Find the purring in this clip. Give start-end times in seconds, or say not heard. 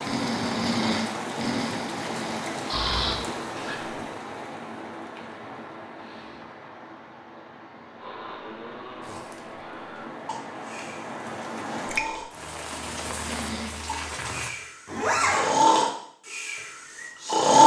not heard.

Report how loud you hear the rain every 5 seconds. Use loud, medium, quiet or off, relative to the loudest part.
loud, medium, loud, off.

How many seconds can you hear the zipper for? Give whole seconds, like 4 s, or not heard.
2 s.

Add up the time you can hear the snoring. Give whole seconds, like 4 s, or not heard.
13 s.